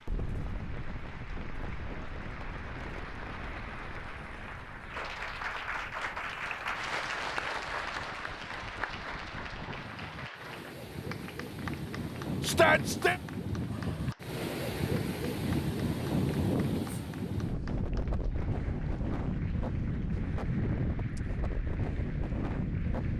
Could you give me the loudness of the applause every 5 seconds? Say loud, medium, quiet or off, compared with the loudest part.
medium, loud, medium, quiet, quiet.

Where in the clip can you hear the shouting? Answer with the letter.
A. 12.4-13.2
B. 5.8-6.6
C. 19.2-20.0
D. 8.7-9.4
A.